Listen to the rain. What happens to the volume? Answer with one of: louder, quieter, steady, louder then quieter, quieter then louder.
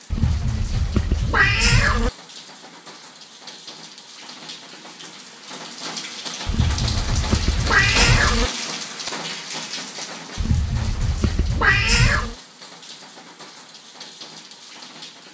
louder then quieter.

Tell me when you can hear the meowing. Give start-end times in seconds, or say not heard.
0.1-2.1, 6.5-8.5, 10.3-12.3.